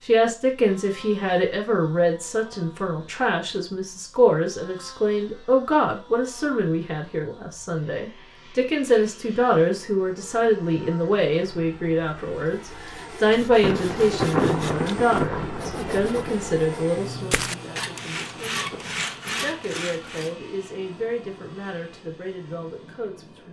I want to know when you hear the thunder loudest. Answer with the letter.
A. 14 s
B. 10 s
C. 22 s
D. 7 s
A.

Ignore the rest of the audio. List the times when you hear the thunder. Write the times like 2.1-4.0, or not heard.
13.6-16.4.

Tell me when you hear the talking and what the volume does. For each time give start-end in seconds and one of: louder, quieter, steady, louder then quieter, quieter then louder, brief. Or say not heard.
0.1-23.4 quieter.